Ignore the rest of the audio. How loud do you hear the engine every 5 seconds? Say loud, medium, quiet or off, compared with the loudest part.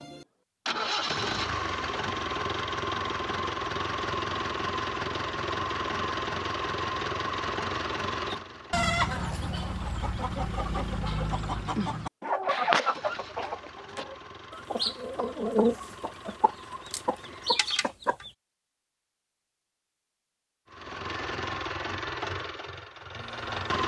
loud, loud, quiet, quiet, loud.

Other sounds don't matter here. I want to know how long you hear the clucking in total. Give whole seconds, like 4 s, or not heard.
10 s.